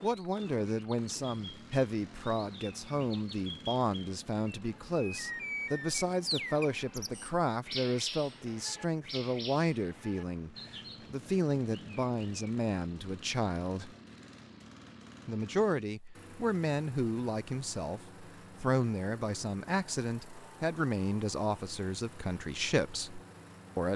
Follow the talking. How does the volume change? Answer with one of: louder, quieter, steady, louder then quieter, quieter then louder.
steady.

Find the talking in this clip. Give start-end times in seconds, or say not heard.
0.0-13.9, 15.2-23.9.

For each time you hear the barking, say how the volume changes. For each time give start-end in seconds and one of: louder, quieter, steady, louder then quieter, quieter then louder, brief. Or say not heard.
not heard.